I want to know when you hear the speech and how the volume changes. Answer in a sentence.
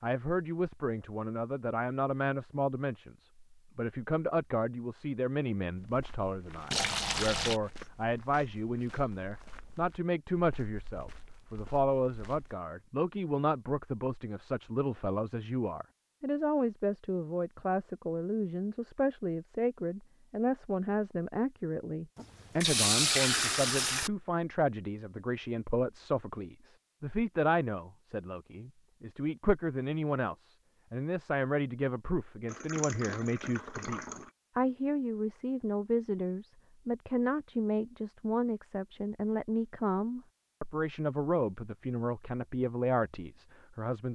You can hear the speech from 0.0 to 44.1 s, at a steady volume.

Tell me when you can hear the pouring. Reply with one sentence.
The pouring can be heard from 6.7 to 7.6 s, from 22.1 to 24.1 s and from 32.5 to 34.3 s.